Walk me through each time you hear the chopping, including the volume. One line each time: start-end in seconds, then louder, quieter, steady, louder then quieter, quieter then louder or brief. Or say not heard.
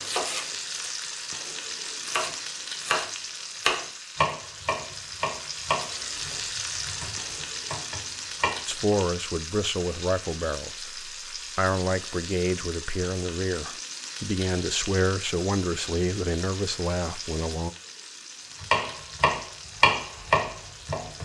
0.0-8.9 louder then quieter
18.6-21.2 brief.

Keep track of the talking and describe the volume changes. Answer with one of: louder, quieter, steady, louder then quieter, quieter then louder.
steady.